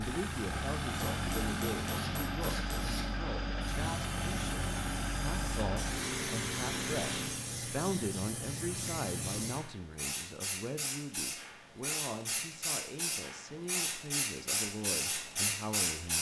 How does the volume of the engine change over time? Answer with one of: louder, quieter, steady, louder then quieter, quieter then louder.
steady.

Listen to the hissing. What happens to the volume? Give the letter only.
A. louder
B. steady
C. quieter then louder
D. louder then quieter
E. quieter
A.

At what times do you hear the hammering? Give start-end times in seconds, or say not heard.
0.9-3.0.